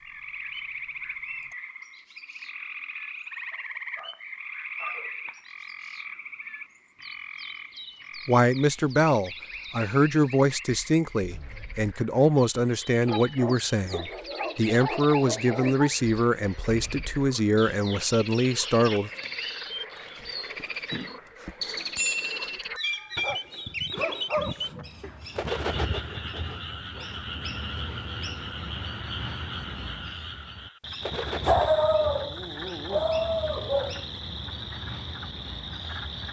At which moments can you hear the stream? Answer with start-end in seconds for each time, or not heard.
not heard.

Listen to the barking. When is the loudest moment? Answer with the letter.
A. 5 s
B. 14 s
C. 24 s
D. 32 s
D.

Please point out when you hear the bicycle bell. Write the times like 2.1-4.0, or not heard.
21.4-22.5.